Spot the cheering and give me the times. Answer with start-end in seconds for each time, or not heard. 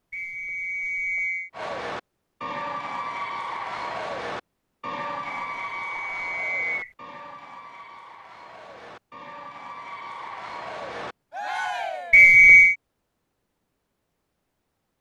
1.5-12.3.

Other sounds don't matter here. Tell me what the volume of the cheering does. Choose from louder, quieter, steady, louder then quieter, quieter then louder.
quieter then louder.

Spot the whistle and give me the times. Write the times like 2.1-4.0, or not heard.
0.1-1.5, 5.5-6.9, 12.1-12.8.